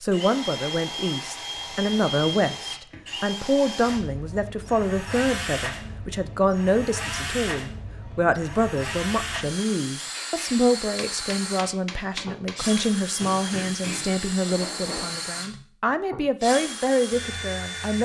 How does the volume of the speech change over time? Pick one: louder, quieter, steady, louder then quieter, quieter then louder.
steady.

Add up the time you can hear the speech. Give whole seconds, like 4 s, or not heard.
18 s.